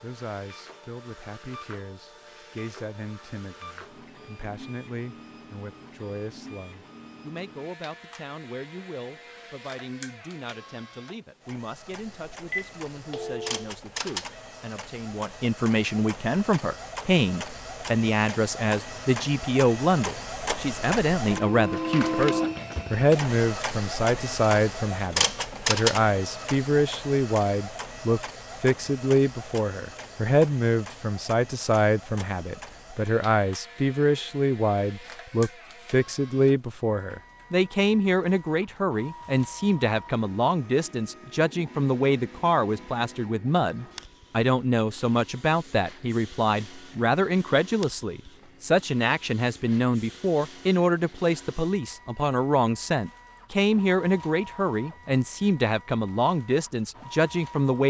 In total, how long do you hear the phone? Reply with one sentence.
You can hear the phone for 2 seconds altogether.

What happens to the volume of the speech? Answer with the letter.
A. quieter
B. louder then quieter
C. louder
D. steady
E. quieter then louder
C.